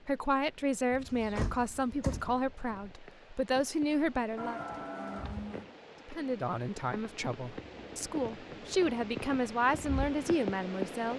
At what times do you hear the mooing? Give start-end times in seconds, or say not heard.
3.9-5.7.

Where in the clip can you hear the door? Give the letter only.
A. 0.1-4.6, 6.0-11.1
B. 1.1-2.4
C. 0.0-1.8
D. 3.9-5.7
B.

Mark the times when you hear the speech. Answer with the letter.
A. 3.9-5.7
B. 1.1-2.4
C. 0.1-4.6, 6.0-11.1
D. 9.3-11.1
C.